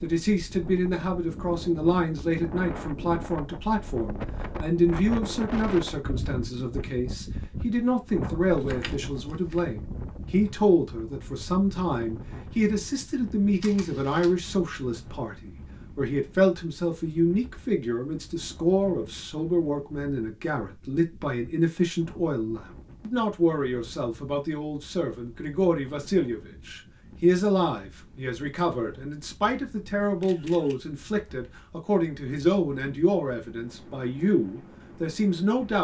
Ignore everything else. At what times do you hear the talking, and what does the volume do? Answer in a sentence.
You can hear the talking from 0.0 to 35.7 s, at a steady volume.